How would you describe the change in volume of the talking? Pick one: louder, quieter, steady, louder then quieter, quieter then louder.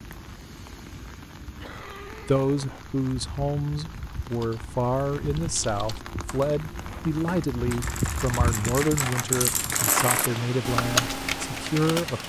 steady.